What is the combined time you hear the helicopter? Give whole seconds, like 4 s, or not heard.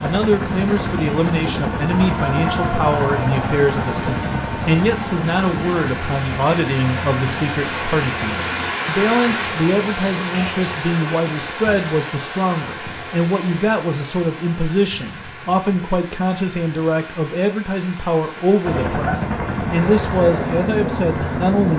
12 s.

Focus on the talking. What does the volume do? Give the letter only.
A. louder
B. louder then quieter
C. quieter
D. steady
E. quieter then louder
D.